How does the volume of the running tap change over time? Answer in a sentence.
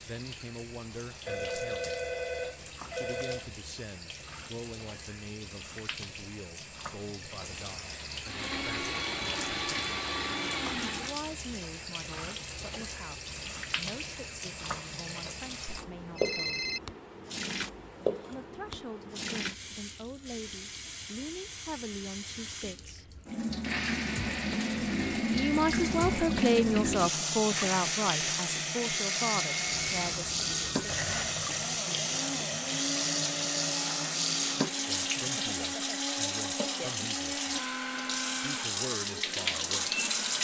The volume of the running tap goes up.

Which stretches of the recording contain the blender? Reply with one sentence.
The blender can be heard from 8.2 to 11.2 s and from 23.6 to 40.3 s.